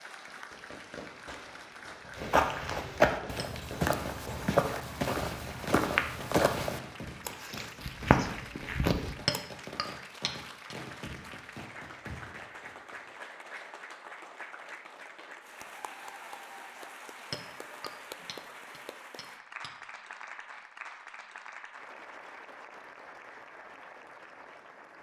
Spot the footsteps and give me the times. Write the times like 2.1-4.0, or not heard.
2.1-9.4.